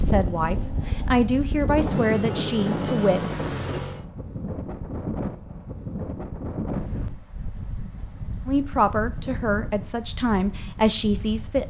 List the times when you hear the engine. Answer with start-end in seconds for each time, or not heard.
0.1-4.0.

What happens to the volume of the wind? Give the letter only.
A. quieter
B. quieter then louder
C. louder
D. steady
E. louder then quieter
A.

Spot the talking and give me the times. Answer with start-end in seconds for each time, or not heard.
0.0-3.2, 8.4-11.6.